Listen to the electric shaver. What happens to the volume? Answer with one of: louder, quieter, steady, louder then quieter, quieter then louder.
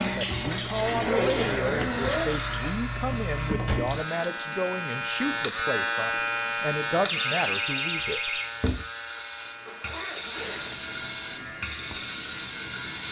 louder then quieter.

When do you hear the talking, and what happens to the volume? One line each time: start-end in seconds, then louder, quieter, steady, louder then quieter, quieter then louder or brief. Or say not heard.
0.0-8.4 steady.